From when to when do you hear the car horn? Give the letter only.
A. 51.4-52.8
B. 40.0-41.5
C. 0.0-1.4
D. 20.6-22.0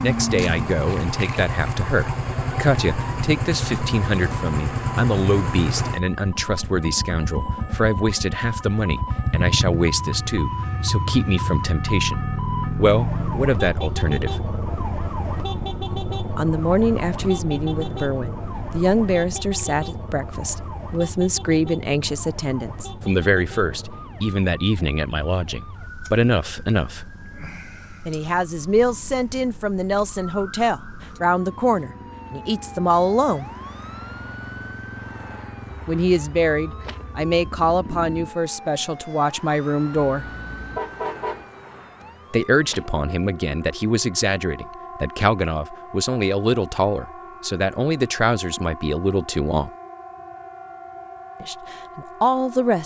B.